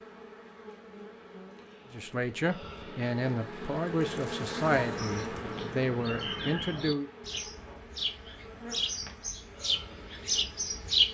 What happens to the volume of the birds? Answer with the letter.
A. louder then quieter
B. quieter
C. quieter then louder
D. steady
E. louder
E.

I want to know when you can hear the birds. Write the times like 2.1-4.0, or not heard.
4.6-11.0.